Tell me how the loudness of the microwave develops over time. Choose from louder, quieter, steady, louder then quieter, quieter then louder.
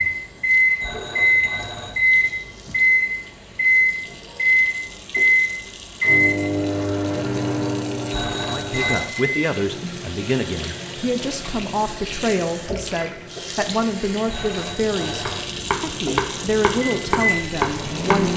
quieter then louder.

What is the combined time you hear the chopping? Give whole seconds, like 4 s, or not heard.
3 s.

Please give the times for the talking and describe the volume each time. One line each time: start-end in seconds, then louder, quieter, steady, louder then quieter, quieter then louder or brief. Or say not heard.
8.4-18.3 steady.